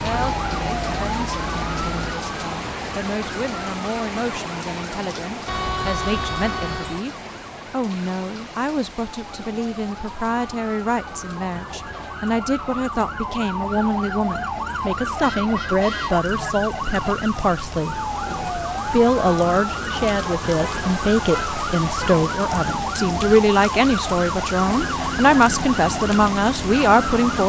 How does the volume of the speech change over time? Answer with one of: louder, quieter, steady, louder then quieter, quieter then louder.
louder.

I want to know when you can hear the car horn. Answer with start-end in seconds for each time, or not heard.
5.5-7.0, 15.2-16.1, 20.6-22.1.